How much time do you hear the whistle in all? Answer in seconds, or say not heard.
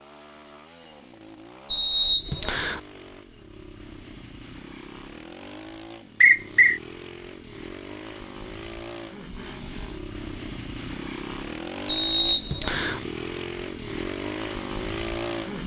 3 s.